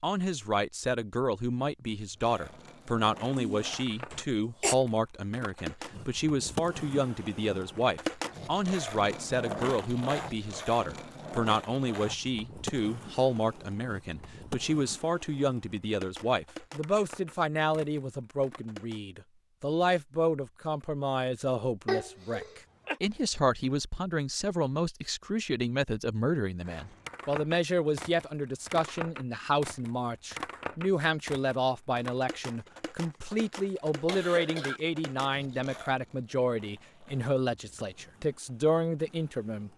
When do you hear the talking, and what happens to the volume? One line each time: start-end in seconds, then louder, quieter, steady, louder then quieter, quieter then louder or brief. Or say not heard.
0.0-39.7 steady.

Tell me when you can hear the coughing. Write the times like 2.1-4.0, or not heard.
3.3-4.8, 21.9-23.0, 33.6-34.8.